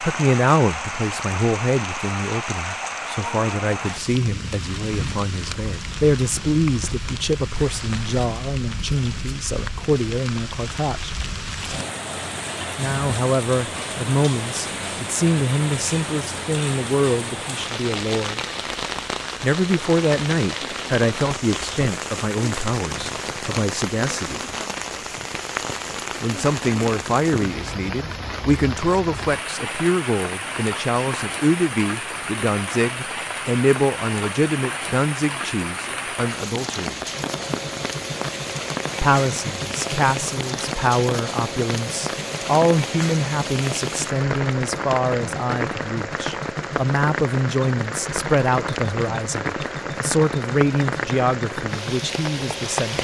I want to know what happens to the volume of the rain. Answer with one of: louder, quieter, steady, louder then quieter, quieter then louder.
steady.